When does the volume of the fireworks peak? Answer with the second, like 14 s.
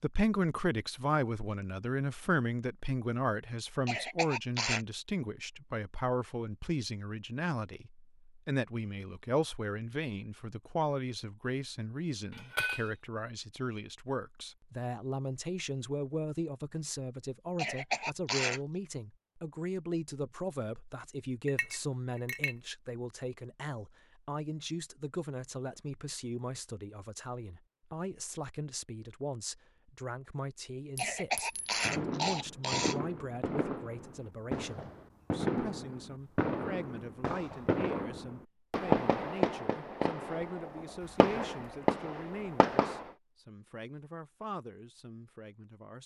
39 s.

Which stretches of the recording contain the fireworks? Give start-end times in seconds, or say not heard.
31.8-43.1.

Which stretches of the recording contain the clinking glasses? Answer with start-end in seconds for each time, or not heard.
12.3-12.9, 21.4-22.6, 30.9-31.8.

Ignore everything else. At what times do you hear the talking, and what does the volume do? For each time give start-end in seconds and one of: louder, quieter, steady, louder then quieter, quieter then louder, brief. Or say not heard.
0.0-46.0 quieter.